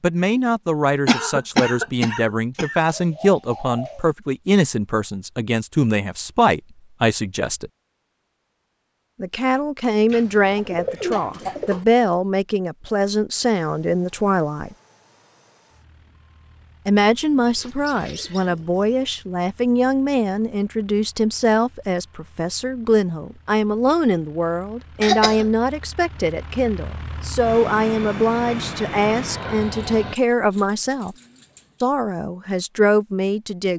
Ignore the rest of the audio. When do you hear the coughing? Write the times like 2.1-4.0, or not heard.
1.1-2.8, 25.0-25.4.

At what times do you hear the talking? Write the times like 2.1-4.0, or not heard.
0.0-7.7, 9.2-14.8, 16.9-31.1, 31.8-33.7.